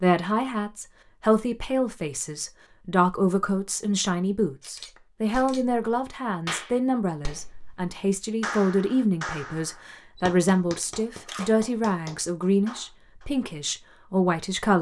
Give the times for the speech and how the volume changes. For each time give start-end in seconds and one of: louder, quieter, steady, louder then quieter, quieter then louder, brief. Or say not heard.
0.0-14.7 steady.